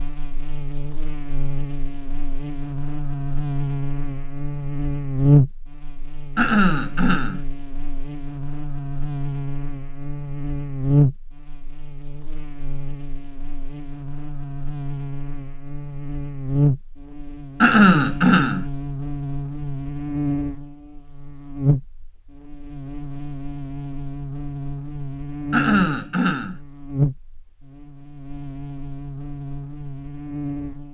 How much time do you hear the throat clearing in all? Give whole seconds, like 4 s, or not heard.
3 s.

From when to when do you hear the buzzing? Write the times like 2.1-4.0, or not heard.
0.0-30.8.